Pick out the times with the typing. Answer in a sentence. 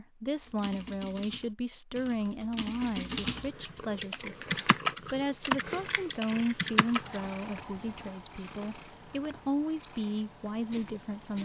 The typing can be heard from 0.5 to 7.2 s.